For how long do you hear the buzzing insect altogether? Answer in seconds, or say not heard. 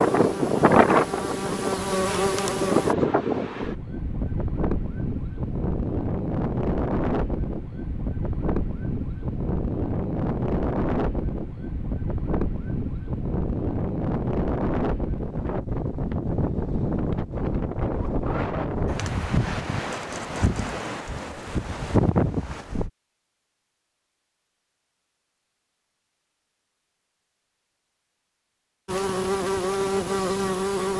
5 s.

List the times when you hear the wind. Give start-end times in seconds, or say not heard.
0.0-22.9.